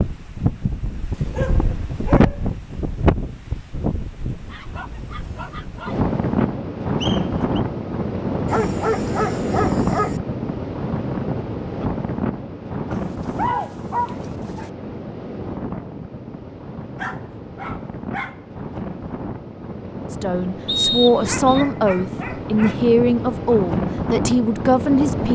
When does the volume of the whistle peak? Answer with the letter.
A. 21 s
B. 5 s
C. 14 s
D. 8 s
A.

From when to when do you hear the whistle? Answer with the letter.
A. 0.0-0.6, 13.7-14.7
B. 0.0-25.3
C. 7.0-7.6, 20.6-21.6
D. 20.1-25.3
C.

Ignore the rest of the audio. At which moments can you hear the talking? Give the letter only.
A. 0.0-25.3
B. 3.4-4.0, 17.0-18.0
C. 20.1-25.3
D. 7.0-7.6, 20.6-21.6
C.